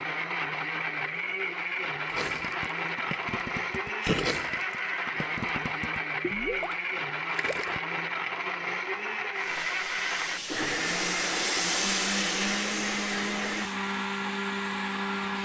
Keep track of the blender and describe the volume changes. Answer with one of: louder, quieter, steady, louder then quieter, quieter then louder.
steady.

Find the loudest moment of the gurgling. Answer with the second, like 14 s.
4 s.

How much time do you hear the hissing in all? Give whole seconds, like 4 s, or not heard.
6 s.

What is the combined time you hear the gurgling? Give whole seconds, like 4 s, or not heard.
5 s.